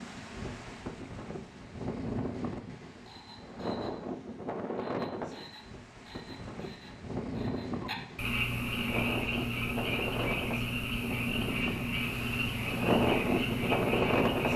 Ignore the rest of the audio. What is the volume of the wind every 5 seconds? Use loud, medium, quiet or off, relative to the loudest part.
medium, medium, loud.